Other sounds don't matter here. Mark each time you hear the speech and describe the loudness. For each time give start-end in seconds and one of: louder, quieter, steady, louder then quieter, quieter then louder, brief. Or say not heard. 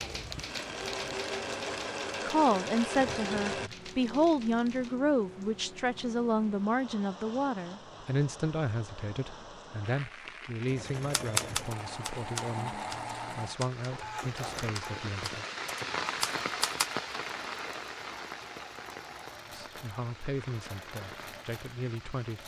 2.2-15.4 quieter
19.5-22.4 brief.